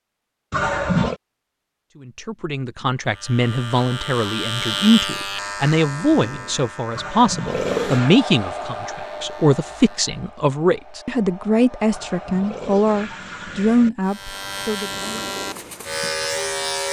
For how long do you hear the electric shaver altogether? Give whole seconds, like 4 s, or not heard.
10 s.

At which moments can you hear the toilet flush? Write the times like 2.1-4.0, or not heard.
0.5-1.2, 7.0-8.2, 11.9-13.9.